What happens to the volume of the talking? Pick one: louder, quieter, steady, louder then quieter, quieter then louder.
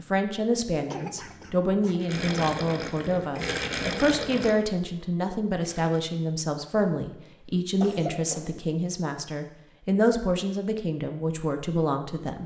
steady.